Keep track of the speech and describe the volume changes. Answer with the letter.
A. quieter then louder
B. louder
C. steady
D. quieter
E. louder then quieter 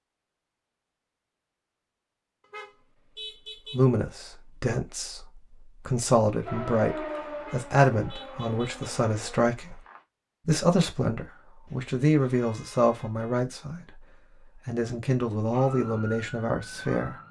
C.